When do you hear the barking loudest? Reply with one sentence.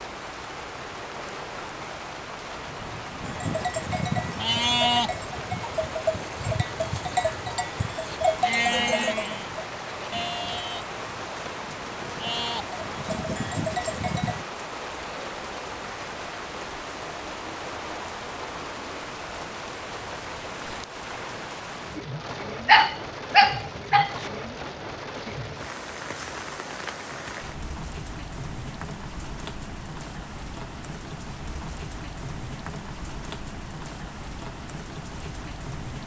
The loudest moment of the barking is at 23 seconds.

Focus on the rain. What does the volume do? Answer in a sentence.
The volume of the rain stays about the same.